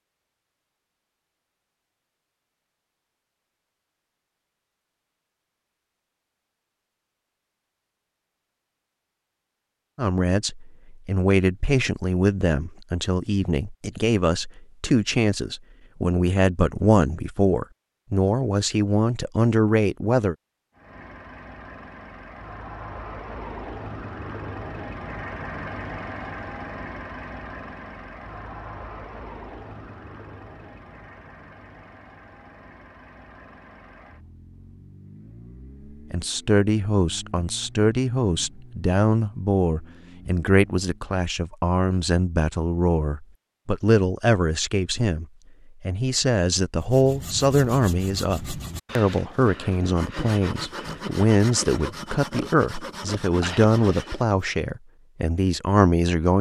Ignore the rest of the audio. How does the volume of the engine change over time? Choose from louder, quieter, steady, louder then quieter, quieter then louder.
quieter.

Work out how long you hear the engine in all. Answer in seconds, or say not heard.
20 s.